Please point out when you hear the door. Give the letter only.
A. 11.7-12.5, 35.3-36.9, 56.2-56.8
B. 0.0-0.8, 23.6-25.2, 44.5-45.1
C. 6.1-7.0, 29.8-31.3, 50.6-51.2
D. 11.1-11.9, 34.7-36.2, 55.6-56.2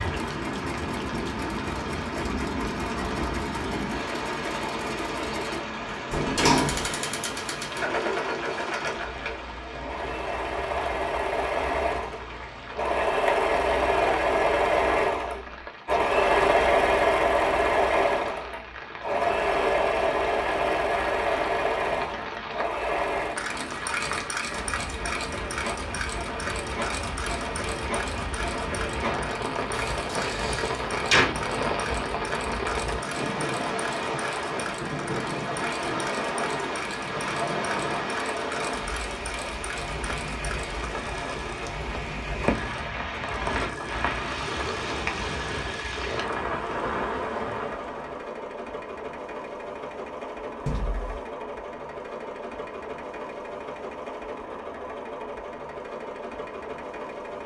C.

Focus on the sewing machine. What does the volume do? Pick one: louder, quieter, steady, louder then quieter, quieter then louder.
louder then quieter.